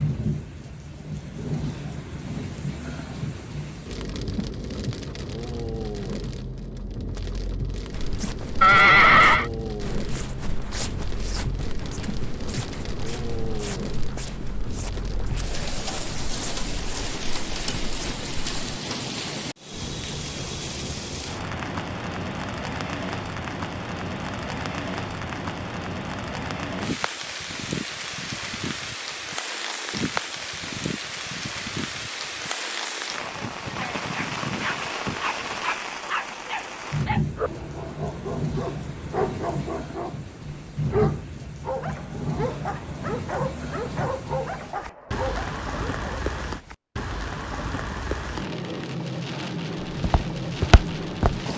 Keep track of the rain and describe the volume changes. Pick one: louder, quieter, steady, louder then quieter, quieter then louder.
steady.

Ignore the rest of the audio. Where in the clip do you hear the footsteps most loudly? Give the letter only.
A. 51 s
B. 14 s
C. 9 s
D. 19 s
A.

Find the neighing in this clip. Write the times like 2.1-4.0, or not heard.
8.6-9.5.